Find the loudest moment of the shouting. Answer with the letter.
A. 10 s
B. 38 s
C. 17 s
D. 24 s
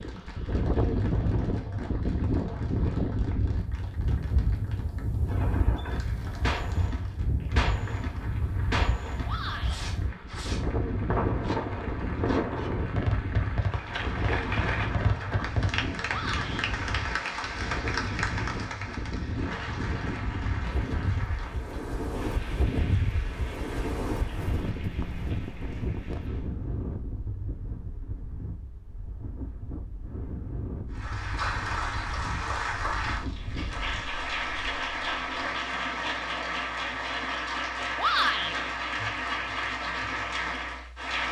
B.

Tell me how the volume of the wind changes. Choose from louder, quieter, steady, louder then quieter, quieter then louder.
quieter.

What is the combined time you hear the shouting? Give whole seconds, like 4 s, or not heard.
2 s.